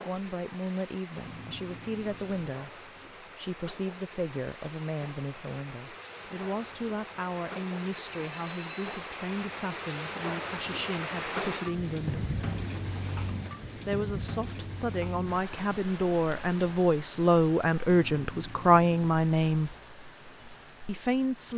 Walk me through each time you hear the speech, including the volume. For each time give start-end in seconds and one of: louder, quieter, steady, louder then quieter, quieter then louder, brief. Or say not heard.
0.1-12.2 steady
13.8-19.8 louder
20.9-21.5 brief.